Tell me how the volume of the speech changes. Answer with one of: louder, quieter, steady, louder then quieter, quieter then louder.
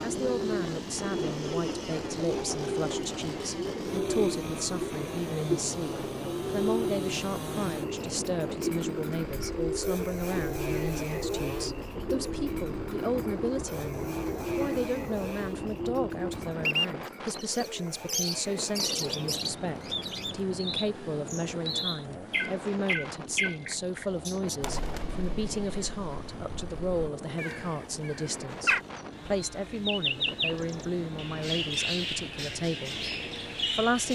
steady.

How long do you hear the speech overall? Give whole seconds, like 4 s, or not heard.
34 s.